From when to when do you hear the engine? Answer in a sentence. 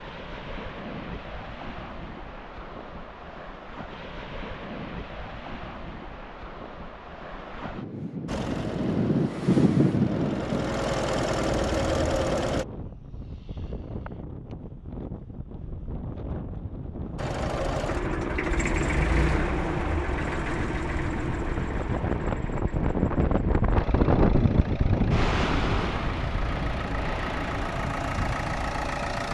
The engine can be heard from 8.2 to 12.7 s and from 17.1 to 29.2 s.